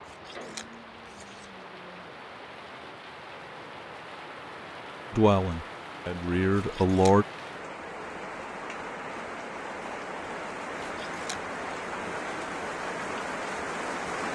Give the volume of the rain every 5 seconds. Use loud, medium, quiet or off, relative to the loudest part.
medium, medium, loud.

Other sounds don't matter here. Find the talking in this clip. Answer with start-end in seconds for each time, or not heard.
5.1-7.2.